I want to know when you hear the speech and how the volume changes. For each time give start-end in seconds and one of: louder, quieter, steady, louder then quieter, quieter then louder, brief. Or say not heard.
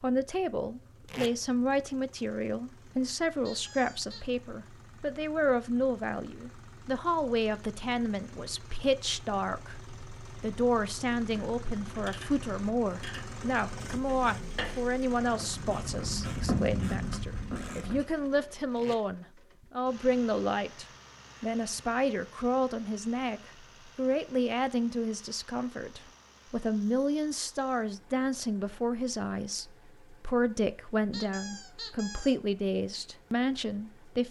0.0-34.2 steady.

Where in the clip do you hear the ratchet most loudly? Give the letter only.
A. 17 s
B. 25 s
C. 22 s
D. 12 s
A.